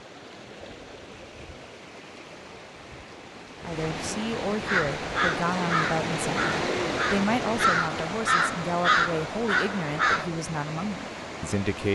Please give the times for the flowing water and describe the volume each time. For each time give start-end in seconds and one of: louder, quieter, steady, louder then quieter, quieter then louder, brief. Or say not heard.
0.0-11.9 louder then quieter.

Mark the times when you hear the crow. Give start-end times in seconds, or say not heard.
4.7-10.2.